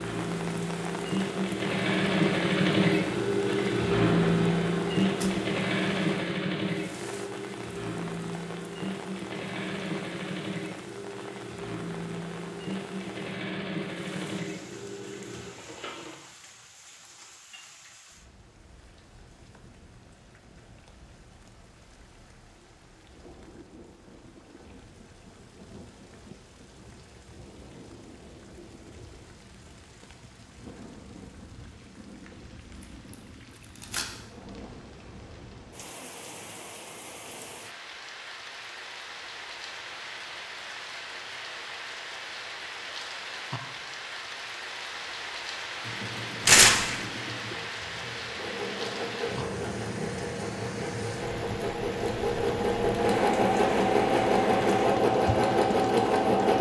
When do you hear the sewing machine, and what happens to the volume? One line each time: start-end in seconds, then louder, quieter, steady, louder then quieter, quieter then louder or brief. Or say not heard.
0.0-16.1 quieter
45.8-56.5 louder.